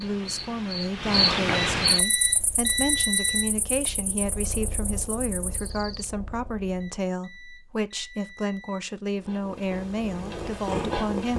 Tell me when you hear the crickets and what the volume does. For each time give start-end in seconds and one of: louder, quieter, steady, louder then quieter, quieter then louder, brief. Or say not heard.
0.0-6.0 quieter.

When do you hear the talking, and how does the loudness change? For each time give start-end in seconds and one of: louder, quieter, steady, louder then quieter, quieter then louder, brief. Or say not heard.
0.0-11.3 steady.